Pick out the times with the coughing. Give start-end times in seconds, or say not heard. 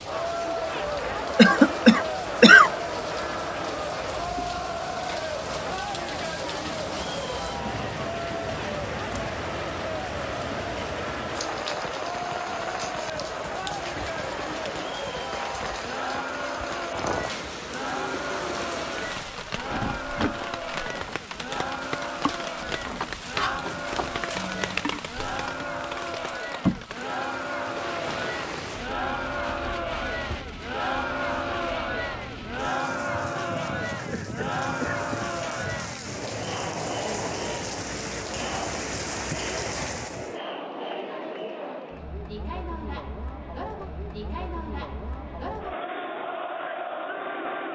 1.4-2.7, 24.4-24.8, 34.0-35.8.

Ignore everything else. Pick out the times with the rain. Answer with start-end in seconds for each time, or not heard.
0.0-40.4.